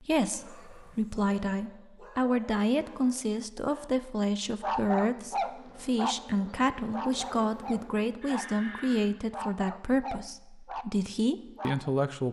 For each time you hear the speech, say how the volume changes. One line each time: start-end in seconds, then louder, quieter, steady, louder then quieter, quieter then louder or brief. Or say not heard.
0.0-12.2 steady.